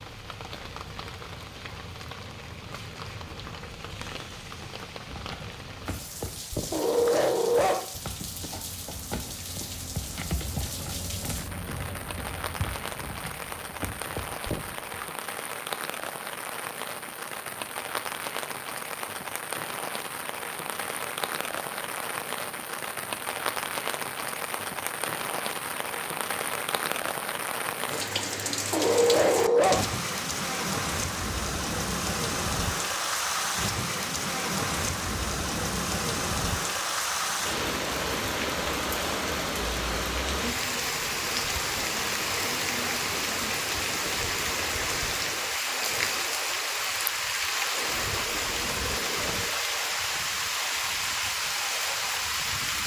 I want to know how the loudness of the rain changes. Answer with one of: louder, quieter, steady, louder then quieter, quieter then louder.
louder.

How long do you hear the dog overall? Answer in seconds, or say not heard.
2 s.